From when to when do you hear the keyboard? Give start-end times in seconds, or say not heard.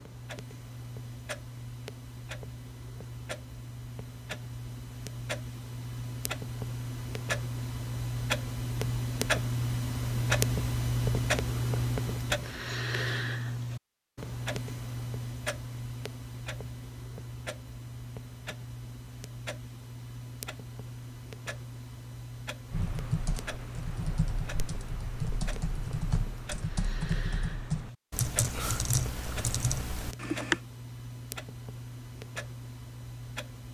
22.7-30.6.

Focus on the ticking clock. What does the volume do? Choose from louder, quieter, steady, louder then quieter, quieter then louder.
louder then quieter.